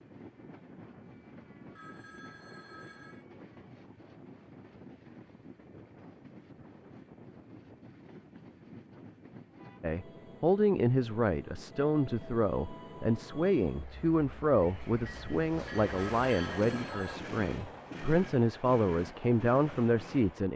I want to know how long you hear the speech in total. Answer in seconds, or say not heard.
11 s.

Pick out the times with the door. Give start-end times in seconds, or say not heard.
not heard.